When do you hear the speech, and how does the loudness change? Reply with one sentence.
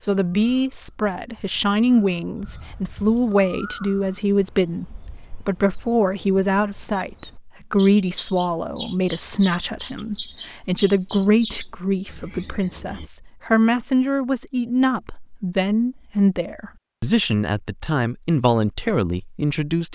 You can hear the speech from 0.0 to 19.9 s, at a steady volume.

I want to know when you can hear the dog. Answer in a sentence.
You can't hear the dog here.